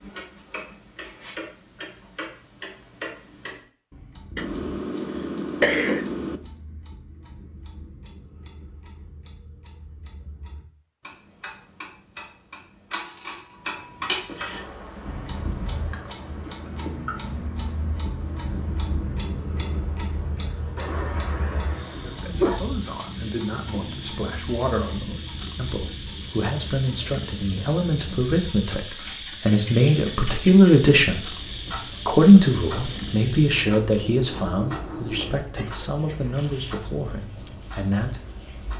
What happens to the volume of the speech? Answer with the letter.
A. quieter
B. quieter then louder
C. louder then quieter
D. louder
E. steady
C.